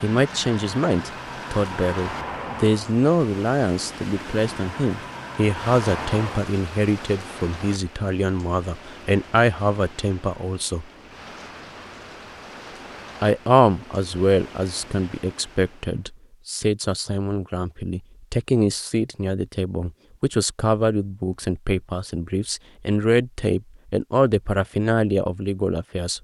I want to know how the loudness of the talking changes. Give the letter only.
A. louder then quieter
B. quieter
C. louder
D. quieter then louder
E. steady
E.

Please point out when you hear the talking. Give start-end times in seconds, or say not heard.
0.0-10.8, 13.2-26.1.